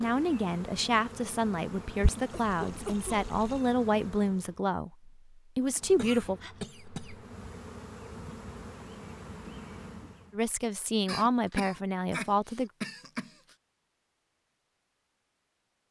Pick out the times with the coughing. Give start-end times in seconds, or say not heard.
2.3-3.1, 6.0-7.2, 11.1-13.3.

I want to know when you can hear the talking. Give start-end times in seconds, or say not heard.
0.0-6.4, 10.3-12.7.